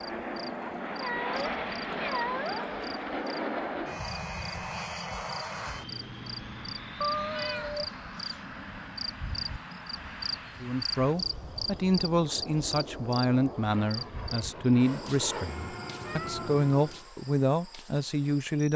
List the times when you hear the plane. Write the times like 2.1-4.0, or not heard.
0.0-17.1.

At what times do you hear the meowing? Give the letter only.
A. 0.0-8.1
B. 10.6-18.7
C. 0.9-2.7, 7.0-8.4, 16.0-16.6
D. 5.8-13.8
C.